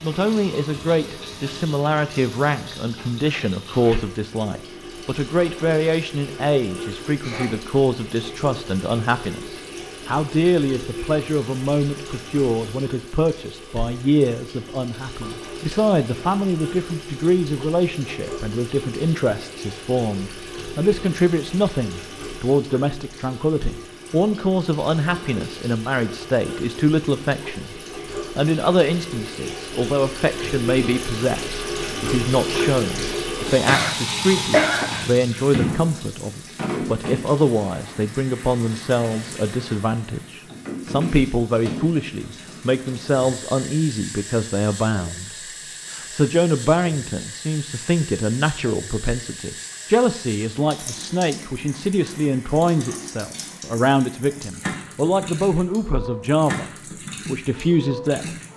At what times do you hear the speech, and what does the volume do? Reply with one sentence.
The speech can be heard from 0.0 to 27.8 s, at a steady volume; from 28.4 to 56.6 s, at a steady volume; and briefly from 57.2 to 58.4 s.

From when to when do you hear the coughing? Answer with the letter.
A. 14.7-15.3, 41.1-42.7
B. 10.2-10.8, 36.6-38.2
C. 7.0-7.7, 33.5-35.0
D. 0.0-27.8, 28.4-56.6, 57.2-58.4
C.